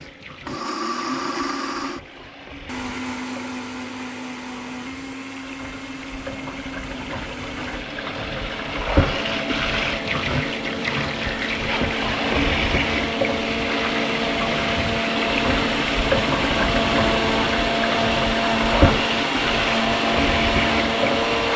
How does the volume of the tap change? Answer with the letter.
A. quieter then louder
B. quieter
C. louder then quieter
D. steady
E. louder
E.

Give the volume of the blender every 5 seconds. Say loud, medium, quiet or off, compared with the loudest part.
medium, quiet, medium, loud, loud.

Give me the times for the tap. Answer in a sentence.
You can hear the tap from 0.0 to 21.5 s.